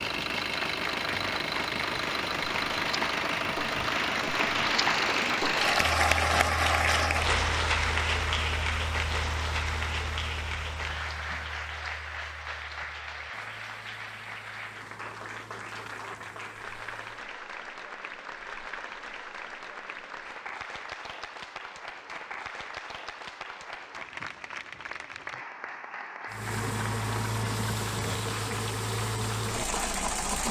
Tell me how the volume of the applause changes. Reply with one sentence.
The loudness of the applause goes down.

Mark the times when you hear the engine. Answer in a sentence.
The engine can be heard from 0.0 to 17.3 s and from 26.3 to 30.4 s.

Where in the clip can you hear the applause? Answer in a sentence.
The applause can be heard from 0.1 to 30.4 s.